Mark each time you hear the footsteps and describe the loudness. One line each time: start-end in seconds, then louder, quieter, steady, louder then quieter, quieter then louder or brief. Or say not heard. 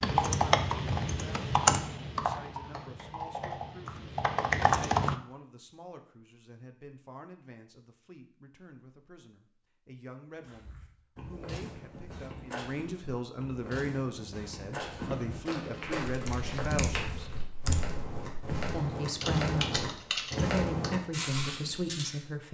10.4-22.2 louder.